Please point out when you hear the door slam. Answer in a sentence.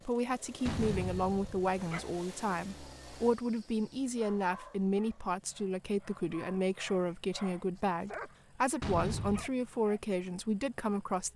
You can hear the door slam from 0.7 to 1.7 s and from 8.8 to 9.5 s.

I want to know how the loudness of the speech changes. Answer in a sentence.
The volume of the speech stays about the same.